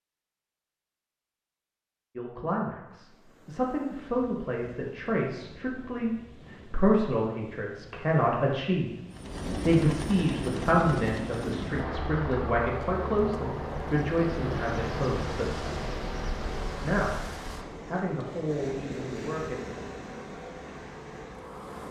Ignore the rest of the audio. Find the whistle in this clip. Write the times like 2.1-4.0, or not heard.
not heard.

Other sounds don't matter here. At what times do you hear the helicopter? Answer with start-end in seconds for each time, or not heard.
9.1-21.8.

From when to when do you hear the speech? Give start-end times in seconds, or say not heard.
2.1-8.9, 9.7-15.7, 16.8-19.6.